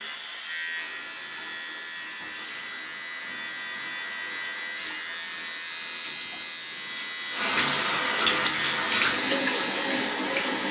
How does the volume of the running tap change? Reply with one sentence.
The loudness of the running tap goes up.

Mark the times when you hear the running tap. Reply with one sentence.
You can hear the running tap from 0.0 to 10.6 s.